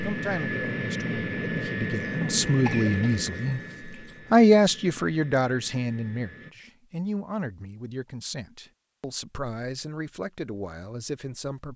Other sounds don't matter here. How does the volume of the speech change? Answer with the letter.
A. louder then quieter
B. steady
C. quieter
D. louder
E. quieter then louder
A.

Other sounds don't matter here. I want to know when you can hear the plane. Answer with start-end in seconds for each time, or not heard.
0.0-6.5.